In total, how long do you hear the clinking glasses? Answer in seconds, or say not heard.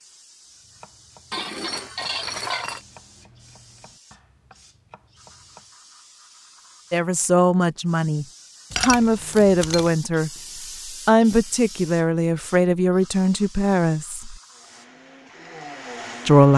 3 s.